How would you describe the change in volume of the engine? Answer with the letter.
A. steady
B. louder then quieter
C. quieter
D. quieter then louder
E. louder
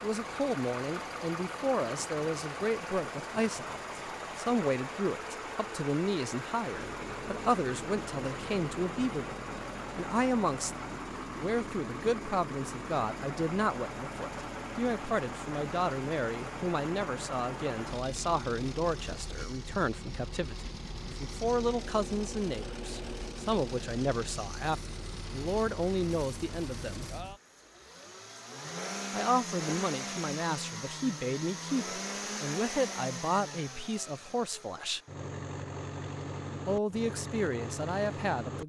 A.